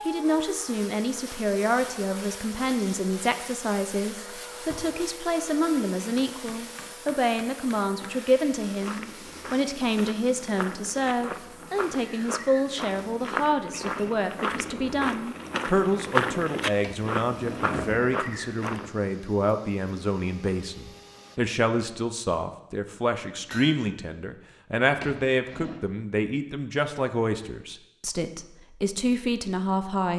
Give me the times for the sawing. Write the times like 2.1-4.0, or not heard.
not heard.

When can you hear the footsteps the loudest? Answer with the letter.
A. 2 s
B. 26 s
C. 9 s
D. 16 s
D.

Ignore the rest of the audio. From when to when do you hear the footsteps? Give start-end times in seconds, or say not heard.
8.3-18.9.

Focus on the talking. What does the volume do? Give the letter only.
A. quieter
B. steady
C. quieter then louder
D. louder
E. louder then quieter
B.